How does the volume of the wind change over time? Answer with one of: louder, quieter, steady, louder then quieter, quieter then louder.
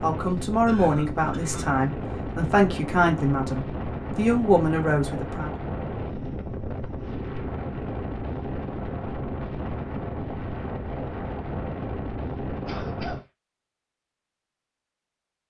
steady.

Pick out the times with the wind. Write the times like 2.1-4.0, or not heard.
0.0-13.2.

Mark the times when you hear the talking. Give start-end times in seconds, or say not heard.
0.0-5.5.